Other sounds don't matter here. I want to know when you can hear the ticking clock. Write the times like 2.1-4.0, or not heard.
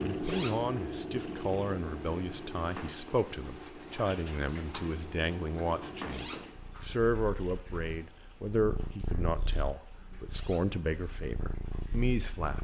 not heard.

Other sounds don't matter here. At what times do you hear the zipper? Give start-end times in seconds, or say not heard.
0.2-0.7, 6.1-6.5, 10.3-10.8.